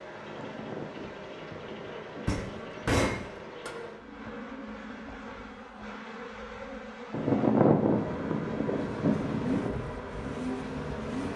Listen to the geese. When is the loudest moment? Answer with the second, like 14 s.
8 s.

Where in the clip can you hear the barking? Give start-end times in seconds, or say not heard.
not heard.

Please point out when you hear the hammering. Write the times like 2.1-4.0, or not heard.
2.2-3.7.